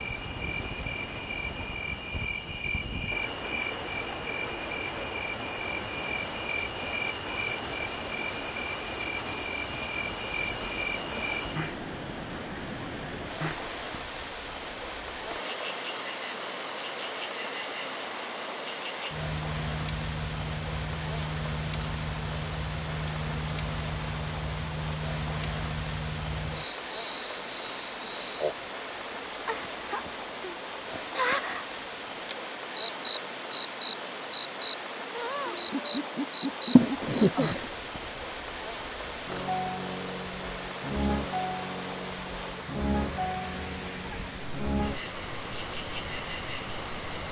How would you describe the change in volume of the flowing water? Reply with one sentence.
The loudness of the flowing water stays about the same.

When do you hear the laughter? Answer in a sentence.
You can hear the laughter from 36.8 to 37.6 s.